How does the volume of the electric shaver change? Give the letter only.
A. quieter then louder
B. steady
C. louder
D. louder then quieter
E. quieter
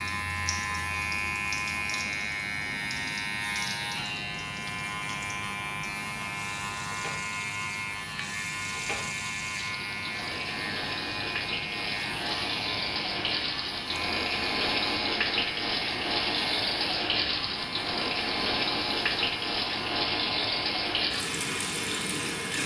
E.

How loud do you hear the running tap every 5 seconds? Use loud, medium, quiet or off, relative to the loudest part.
quiet, quiet, loud, loud, loud.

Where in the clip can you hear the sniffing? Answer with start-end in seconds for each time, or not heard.
not heard.